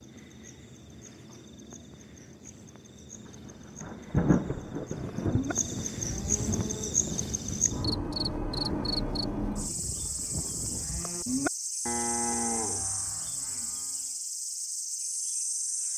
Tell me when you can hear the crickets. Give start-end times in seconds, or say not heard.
0.0-15.9.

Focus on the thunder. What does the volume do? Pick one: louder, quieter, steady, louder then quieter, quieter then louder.
quieter.